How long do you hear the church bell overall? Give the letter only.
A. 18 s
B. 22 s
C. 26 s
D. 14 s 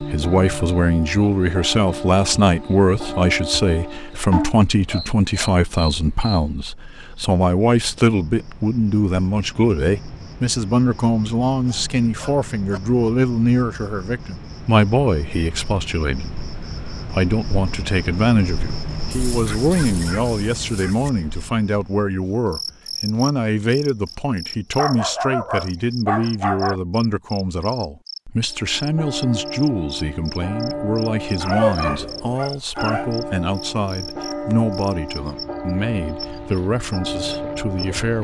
D.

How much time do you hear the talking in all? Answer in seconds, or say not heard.
38 s.